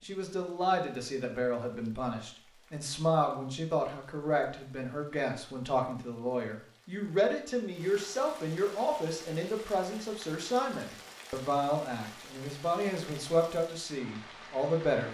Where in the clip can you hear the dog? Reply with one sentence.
The dog can't be heard in this clip.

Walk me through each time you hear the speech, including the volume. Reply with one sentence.
The speech can be heard from 0.0 to 15.0 s, at a steady volume.